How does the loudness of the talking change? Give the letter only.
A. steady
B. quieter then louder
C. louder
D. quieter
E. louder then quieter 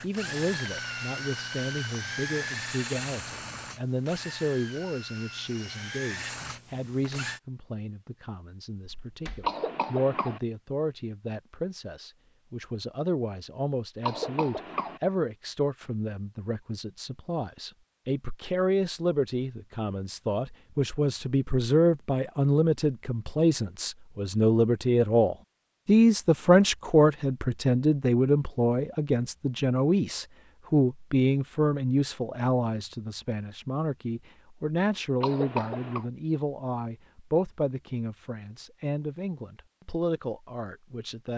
E.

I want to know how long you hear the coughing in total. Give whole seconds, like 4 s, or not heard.
3 s.